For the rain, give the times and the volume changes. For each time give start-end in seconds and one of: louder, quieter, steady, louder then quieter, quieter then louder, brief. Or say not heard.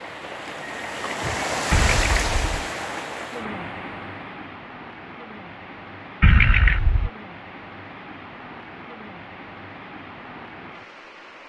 0.0-11.4 quieter.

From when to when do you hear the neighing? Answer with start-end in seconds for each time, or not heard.
1.7-2.5, 6.2-7.1.